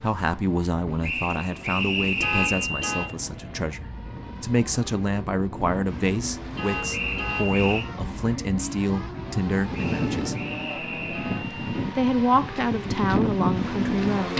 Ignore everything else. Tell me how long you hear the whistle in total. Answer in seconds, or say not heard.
4 s.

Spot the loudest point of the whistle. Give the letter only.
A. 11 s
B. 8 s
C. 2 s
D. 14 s
C.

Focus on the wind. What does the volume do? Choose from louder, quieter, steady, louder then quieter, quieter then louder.
louder.